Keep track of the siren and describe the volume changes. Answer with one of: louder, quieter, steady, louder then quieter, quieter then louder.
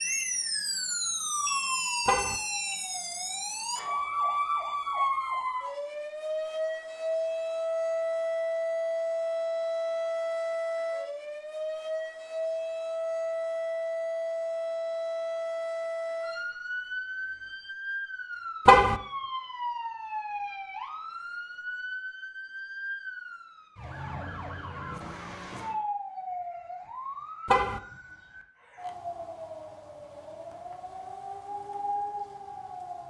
quieter.